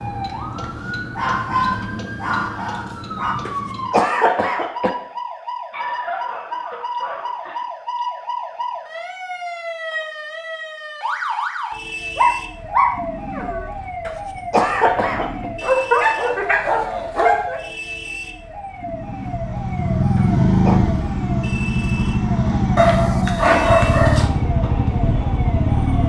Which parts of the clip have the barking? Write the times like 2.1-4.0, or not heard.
1.1-3.4, 5.7-7.7, 12.2-13.7, 15.6-17.6, 22.8-24.2.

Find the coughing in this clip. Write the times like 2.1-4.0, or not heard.
3.5-4.9, 14.1-15.5, 20.1-20.8.